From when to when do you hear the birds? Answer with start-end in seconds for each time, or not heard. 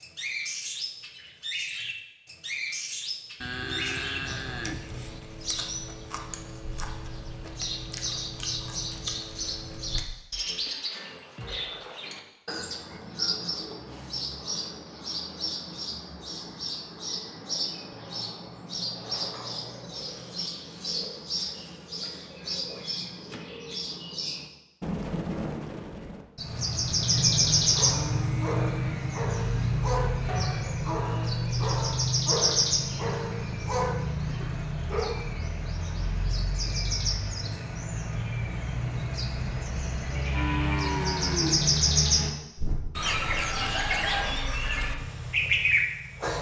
0.0-46.3.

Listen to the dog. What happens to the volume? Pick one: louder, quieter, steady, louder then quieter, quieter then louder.
steady.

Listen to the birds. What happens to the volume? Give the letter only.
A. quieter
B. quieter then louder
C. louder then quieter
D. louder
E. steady
D.